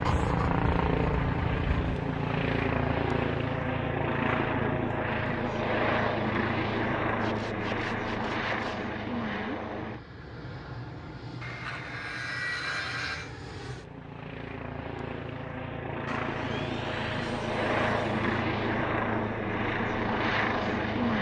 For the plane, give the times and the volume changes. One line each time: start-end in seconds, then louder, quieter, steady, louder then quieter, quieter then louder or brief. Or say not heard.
0.0-21.1 quieter then louder.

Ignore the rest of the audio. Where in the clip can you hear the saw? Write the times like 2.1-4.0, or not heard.
0.1-2.0, 7.2-8.8, 11.4-13.3, 16.1-18.4.